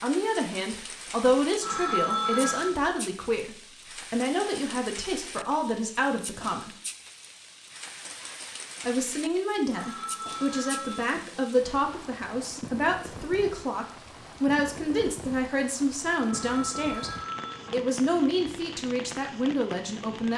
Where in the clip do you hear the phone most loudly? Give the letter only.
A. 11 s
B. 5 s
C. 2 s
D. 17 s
C.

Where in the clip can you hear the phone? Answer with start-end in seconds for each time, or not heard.
1.6-2.8, 9.7-11.5, 16.2-17.9.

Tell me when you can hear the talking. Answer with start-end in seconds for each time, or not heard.
0.0-6.8, 8.8-17.1, 17.7-20.3.